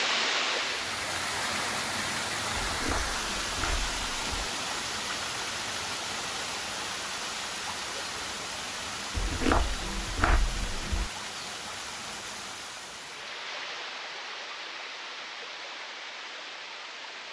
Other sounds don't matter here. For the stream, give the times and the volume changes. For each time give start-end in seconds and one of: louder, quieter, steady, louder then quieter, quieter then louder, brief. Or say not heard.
0.0-17.2 quieter.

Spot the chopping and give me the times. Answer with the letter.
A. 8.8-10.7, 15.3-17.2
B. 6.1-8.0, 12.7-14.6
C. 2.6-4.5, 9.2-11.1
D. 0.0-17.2
C.